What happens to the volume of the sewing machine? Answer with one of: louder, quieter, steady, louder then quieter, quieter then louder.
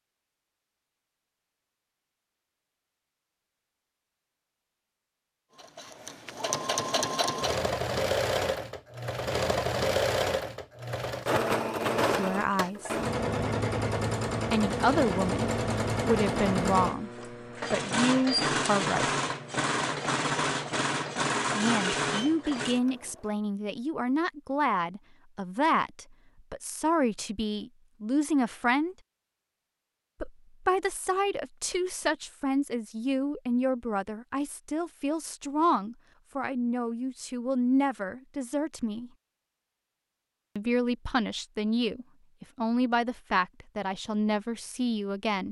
steady.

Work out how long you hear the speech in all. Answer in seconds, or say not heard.
26 s.